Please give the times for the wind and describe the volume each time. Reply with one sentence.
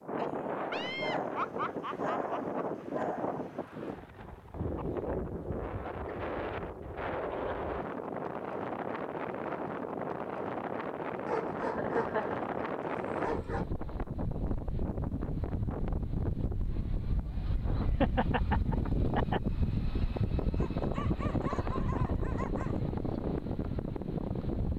The wind can be heard from 0.0 to 24.7 s, at a steady volume.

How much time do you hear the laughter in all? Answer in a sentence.
You can hear the laughter for 5 seconds altogether.